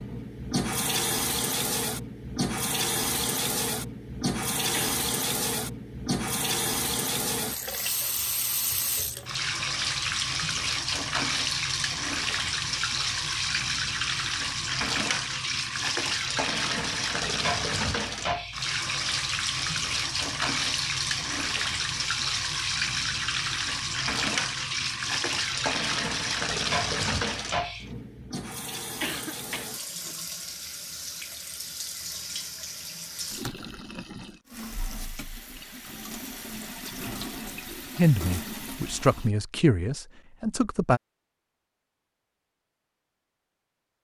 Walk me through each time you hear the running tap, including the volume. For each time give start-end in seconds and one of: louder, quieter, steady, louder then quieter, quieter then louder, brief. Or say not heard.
0.0-39.4 quieter.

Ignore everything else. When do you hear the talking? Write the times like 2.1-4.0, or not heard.
38.0-41.0.